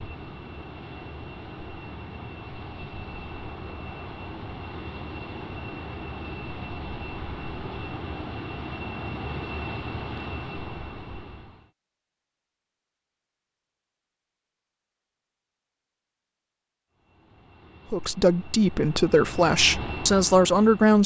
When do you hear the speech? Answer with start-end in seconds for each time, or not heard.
17.9-21.0.